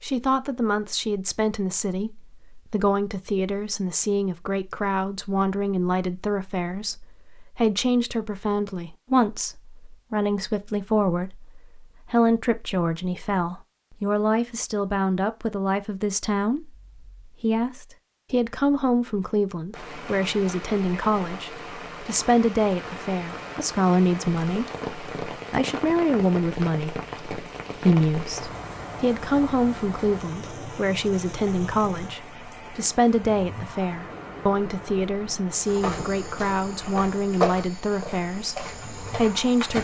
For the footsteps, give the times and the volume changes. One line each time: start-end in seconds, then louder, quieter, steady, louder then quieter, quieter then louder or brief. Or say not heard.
35.6-39.7 louder then quieter.